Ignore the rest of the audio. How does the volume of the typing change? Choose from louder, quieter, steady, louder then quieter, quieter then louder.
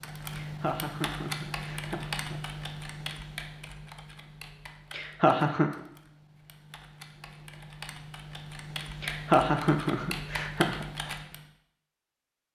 quieter then louder.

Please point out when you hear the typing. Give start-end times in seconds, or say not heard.
0.0-11.4.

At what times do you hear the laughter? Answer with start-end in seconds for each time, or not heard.
0.3-2.4, 4.9-5.8, 9.0-10.8.